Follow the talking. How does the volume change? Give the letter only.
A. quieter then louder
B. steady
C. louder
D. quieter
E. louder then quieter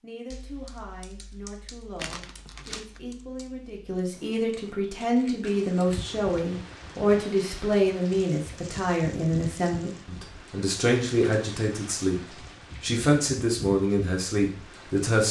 C.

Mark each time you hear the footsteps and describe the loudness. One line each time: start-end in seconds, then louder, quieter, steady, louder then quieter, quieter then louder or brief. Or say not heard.
not heard.